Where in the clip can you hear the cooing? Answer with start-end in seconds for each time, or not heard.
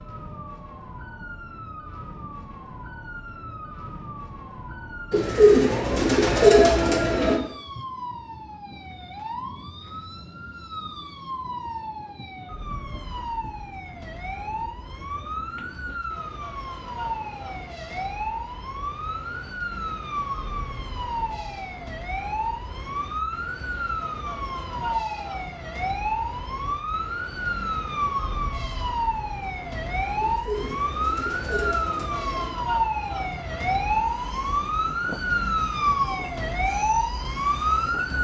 5.1-7.3, 30.2-32.5.